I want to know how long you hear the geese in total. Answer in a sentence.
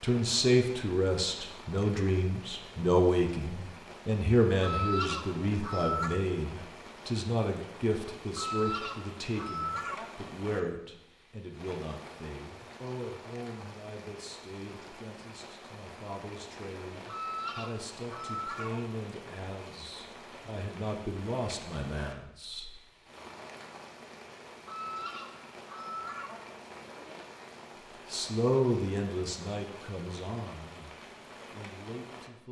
You can hear the geese for 7 seconds altogether.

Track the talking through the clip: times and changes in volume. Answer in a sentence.
You can hear the talking from 0.0 to 22.8 s, getting quieter then louder; and from 28.1 to 32.4 s, getting quieter then louder.